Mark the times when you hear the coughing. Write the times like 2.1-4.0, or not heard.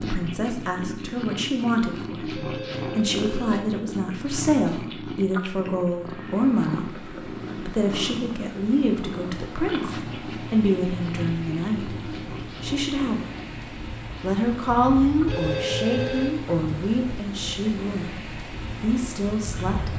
not heard.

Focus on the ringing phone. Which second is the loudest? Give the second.
16 s.